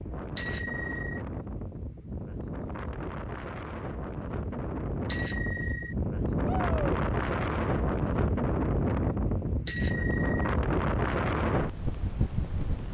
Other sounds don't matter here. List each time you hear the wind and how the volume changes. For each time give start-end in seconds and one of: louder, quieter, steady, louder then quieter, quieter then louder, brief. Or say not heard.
0.0-12.8 louder.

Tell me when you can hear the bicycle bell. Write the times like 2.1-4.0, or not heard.
0.3-1.2, 5.1-5.9, 9.7-10.5.